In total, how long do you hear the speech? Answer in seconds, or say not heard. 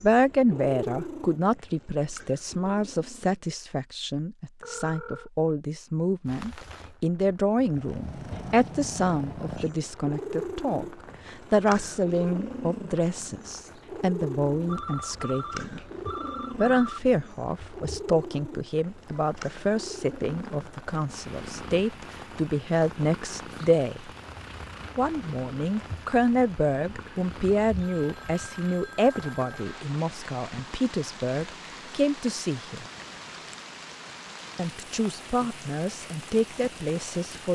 34 s.